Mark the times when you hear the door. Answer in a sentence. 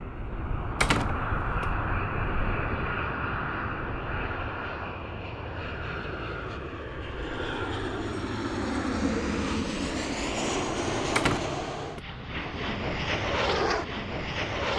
You can hear the door from 0.8 to 1.6 s and from 11.2 to 12.0 s.